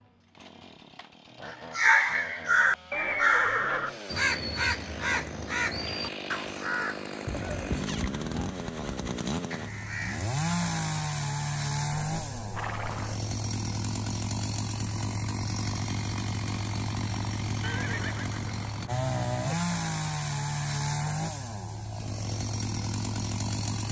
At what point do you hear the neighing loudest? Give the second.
3 s.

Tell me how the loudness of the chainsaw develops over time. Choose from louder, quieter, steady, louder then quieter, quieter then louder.
louder.